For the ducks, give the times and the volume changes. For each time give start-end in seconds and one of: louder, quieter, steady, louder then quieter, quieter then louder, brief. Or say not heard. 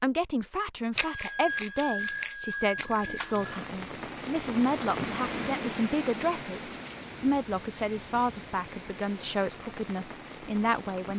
not heard.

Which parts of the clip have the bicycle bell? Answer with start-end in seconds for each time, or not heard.
0.9-3.7.